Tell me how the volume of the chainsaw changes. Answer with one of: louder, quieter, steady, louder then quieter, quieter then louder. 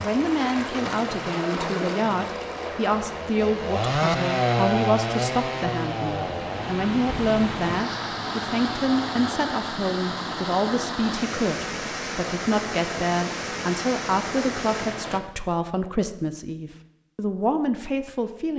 louder then quieter.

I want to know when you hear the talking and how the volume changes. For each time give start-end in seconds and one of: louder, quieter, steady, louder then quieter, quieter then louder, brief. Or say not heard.
0.0-18.5 steady.